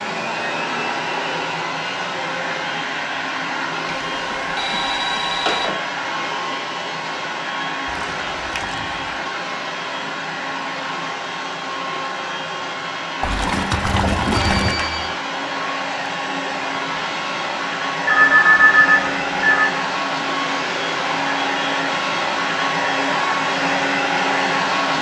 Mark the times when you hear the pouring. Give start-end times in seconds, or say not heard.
7.8-9.2, 13.2-14.8.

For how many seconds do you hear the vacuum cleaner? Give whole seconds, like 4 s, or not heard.
25 s.